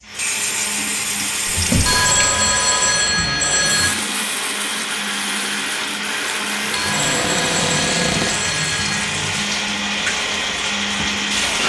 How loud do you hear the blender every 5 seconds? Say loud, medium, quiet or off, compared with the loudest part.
medium, loud, loud.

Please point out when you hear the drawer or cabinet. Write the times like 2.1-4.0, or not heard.
1.4-2.0, 6.8-8.4.